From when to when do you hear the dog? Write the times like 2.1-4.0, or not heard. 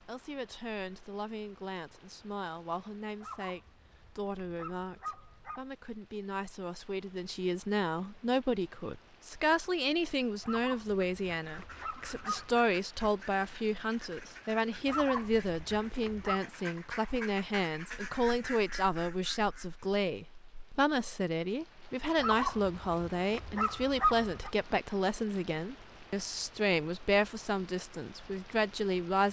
3.2-5.7, 10.4-12.6, 14.8-16.4, 22.1-24.5.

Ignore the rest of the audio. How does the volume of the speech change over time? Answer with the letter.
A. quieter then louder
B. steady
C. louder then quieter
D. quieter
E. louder
E.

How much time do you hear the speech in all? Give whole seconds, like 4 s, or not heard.
29 s.